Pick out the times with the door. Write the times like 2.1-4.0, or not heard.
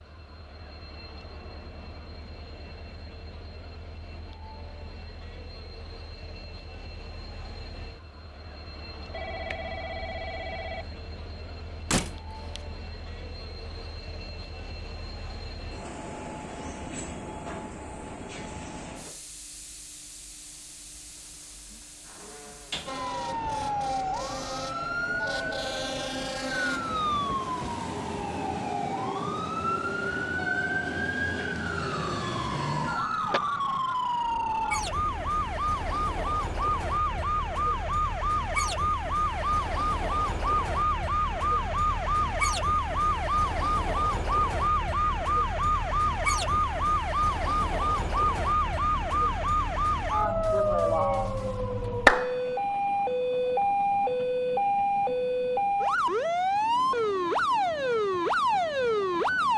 11.9-12.6.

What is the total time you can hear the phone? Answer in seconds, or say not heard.
4 s.